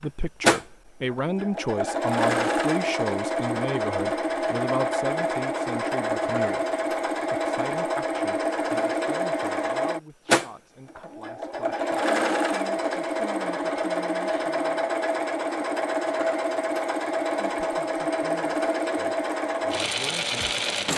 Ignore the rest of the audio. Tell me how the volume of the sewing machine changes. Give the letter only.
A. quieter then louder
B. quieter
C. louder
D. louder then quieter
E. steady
E.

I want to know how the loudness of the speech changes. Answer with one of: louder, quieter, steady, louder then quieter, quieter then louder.
quieter.